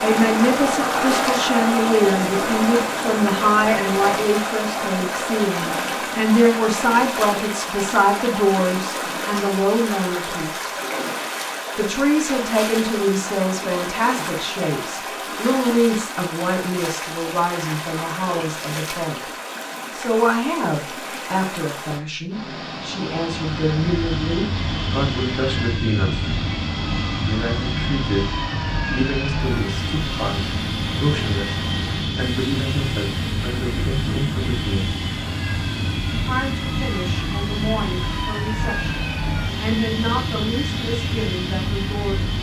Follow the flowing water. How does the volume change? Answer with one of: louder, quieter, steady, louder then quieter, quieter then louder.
quieter.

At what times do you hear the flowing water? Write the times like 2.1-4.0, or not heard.
0.0-42.3.